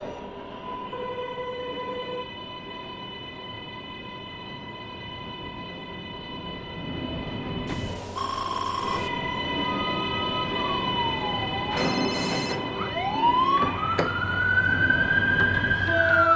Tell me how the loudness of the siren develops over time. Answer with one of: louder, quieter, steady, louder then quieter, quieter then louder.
louder.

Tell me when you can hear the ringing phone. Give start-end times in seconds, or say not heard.
0.8-2.2, 7.7-9.1, 11.8-12.6.